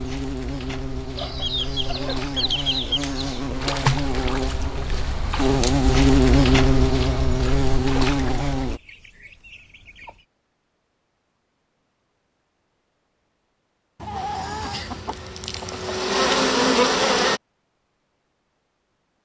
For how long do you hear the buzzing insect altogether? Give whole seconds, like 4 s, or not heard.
12 s.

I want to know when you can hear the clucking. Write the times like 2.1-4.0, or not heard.
1.1-3.5, 8.7-10.2, 13.9-16.0.